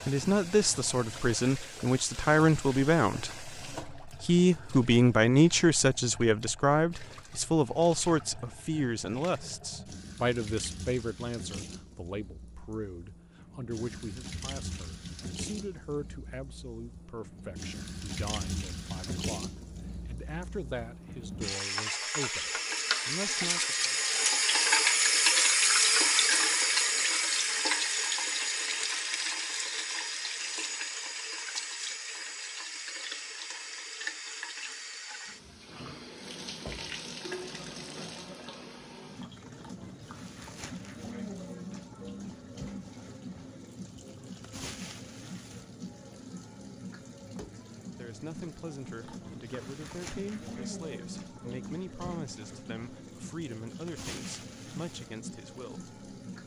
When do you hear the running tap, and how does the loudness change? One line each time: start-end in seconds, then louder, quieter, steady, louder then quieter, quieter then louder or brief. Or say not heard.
0.0-56.4 louder then quieter.